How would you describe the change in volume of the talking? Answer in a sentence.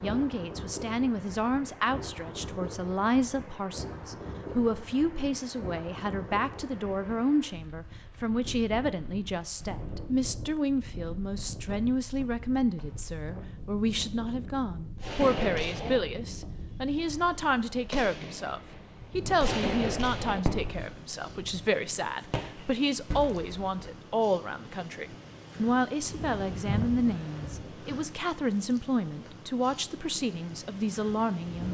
The loudness of the talking stays about the same.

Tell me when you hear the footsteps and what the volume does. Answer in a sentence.
You can't hear the footsteps here.